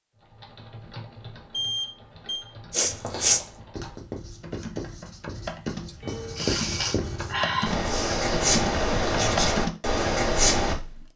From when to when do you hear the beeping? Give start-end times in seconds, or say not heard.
1.5-2.5, 6.0-7.8.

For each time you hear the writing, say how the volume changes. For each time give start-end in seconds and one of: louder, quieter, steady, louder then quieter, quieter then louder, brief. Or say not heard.
2.8-10.8 louder.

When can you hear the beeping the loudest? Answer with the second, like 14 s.
2 s.